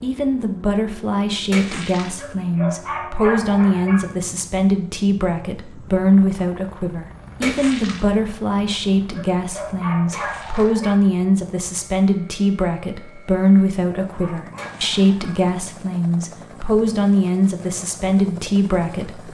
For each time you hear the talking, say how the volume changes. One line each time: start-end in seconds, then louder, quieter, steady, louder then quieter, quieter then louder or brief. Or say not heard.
0.0-19.2 steady.